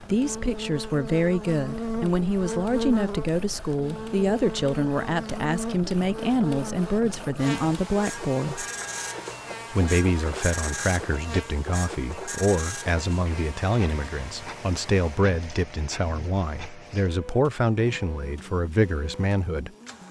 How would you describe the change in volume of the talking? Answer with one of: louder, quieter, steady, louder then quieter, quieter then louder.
steady.